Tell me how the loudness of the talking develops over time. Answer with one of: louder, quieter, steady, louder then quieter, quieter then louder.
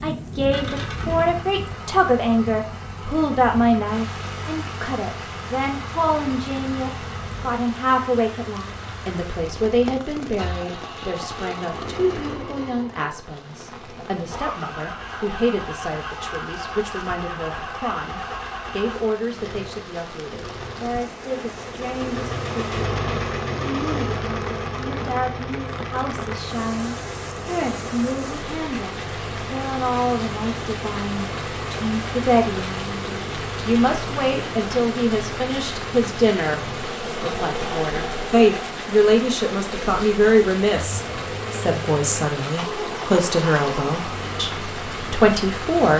quieter then louder.